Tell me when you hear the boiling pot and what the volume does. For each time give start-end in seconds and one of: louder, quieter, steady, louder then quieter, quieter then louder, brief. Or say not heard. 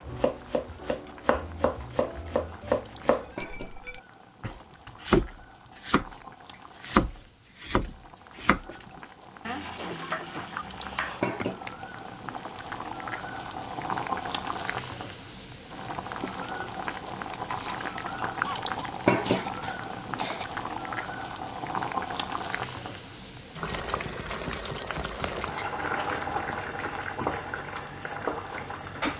0.0-29.1 louder.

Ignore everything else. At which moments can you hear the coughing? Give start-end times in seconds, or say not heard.
9.8-11.2, 18.4-20.4.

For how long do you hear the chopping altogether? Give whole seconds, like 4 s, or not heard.
12 s.